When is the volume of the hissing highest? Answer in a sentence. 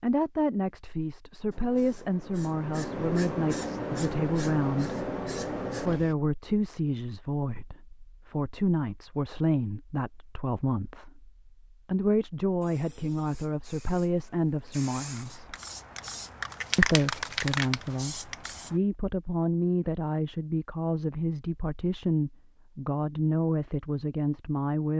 The loudest moment of the hissing is at 17 seconds.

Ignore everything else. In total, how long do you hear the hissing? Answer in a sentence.
You can hear the hissing for 11 seconds altogether.